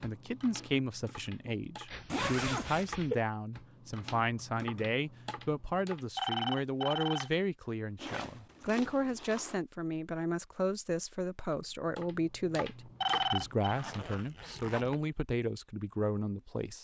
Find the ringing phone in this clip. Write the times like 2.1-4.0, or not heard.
1.9-3.1, 6.2-7.3, 13.0-13.7.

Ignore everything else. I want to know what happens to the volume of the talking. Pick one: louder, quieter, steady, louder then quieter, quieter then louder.
steady.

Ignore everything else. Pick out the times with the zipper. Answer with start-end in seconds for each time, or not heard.
2.0-2.9, 8.0-9.6, 13.7-15.1.